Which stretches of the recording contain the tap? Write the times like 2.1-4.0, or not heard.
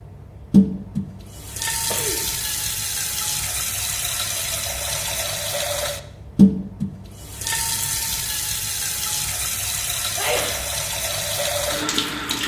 0.0-12.4.